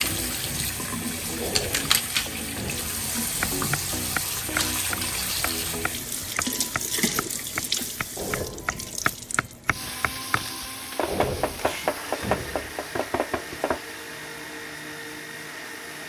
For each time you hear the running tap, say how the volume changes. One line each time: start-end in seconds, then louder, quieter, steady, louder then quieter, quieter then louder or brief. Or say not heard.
0.0-16.0 quieter.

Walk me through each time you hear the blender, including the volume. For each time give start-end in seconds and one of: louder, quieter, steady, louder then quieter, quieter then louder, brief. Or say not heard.
9.7-16.0 steady.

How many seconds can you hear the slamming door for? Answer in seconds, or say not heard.
4 s.